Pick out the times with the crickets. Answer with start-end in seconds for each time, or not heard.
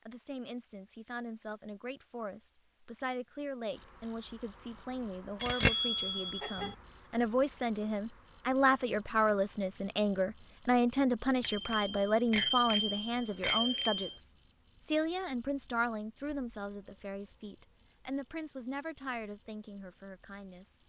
3.7-20.8.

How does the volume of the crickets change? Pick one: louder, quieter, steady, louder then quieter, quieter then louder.
quieter.